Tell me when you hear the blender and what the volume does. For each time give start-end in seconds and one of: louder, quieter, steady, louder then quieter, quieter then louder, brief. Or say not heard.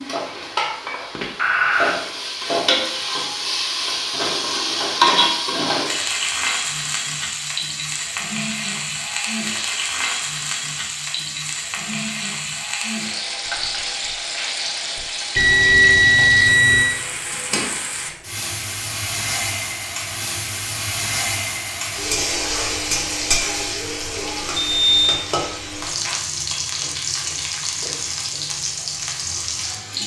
not heard.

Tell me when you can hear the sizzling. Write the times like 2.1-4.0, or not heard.
0.0-30.0.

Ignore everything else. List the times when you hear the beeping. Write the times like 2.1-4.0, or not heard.
1.4-2.0, 15.3-17.0, 24.6-25.2.